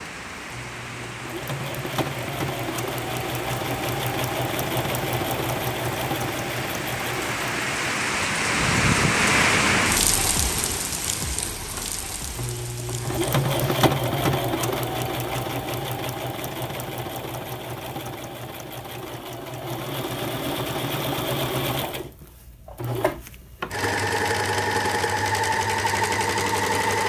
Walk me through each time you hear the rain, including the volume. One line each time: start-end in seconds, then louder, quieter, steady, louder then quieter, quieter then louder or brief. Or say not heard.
0.0-13.8 louder then quieter.